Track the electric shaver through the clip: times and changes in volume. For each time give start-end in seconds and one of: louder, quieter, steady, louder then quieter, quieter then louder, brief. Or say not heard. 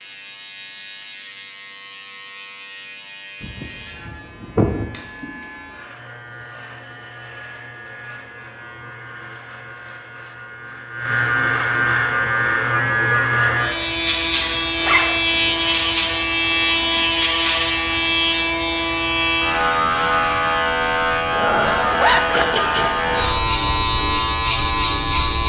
0.0-25.4 louder.